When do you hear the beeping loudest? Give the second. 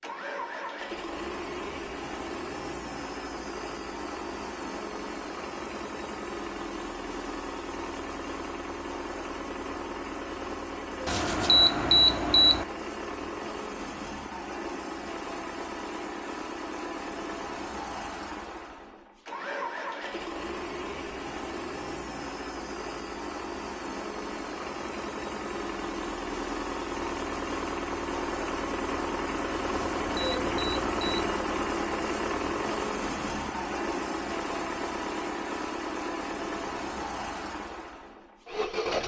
12 s.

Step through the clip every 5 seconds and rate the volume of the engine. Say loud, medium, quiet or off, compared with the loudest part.
medium, medium, medium, medium, medium, loud, loud, loud.